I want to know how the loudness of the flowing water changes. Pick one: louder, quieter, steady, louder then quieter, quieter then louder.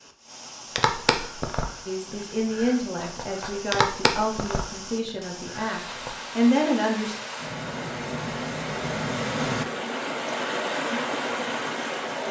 louder.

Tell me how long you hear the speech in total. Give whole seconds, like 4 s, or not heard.
5 s.